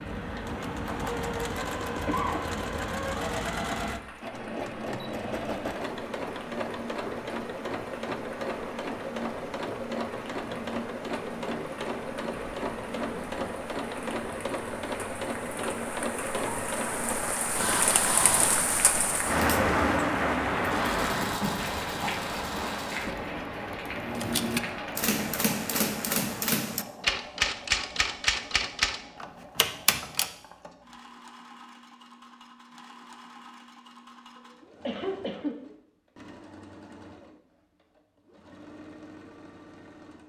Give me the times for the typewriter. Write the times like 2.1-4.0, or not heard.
23.9-30.3.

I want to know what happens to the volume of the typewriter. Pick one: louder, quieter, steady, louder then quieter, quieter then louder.
steady.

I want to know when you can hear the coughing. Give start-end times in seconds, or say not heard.
2.0-2.5, 21.2-23.2, 34.4-35.5.